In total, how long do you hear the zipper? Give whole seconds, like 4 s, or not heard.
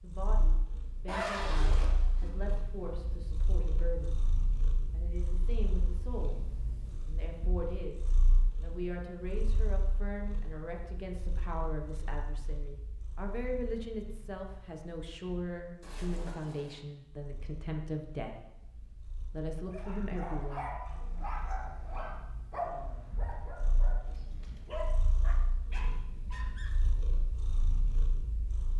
2 s.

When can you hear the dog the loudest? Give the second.
23 s.